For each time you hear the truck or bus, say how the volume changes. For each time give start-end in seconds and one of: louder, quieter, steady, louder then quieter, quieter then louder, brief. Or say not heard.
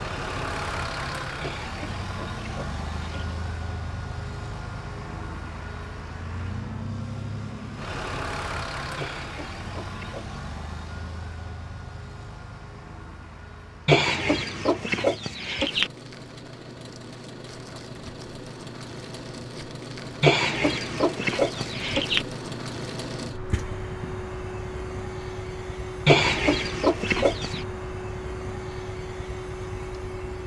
0.0-30.4 quieter then louder.